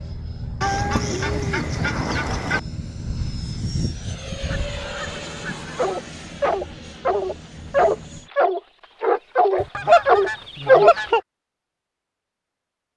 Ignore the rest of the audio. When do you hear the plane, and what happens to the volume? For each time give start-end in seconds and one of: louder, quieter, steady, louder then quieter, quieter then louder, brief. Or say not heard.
0.0-8.3 quieter.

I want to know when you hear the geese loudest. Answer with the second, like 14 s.
10 s.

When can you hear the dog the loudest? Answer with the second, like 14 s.
11 s.